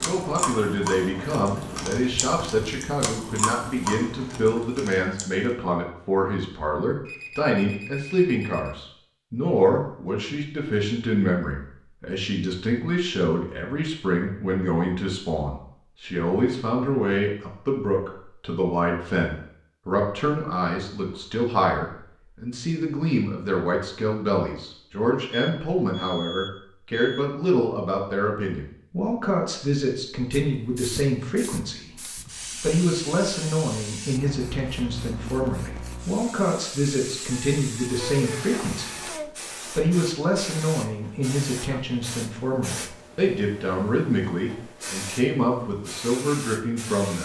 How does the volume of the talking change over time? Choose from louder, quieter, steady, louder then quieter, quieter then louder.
steady.